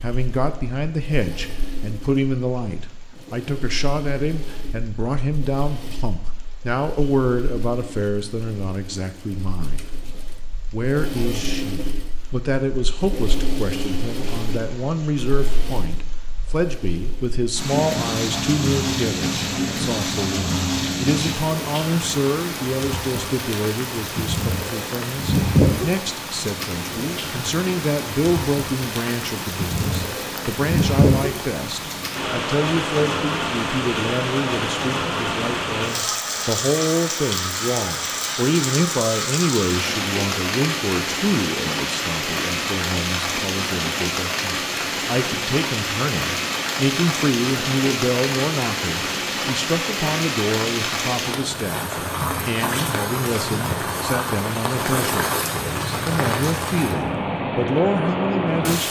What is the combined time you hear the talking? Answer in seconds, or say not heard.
58 s.